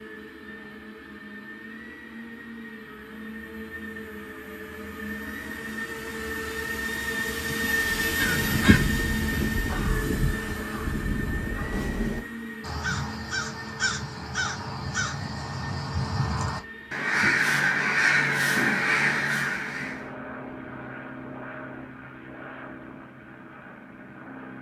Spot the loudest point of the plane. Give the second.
8 s.